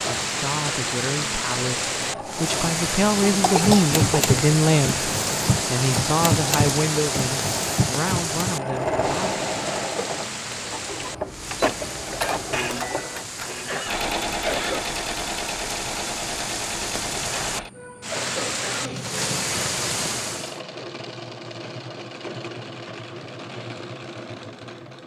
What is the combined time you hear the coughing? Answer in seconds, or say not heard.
4 s.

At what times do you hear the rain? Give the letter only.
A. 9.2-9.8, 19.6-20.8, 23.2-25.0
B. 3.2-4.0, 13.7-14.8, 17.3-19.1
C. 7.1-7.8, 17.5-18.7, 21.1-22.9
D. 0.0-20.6
D.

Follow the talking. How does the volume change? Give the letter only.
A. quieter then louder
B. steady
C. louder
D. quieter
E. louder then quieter
E.